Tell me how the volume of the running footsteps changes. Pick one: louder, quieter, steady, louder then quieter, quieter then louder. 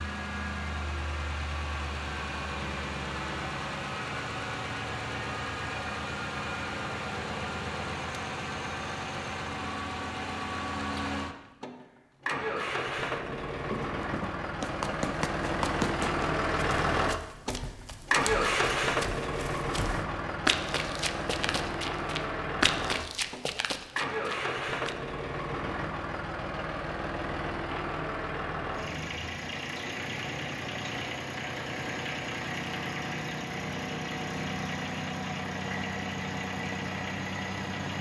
quieter then louder.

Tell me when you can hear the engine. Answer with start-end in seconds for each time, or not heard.
0.0-37.9.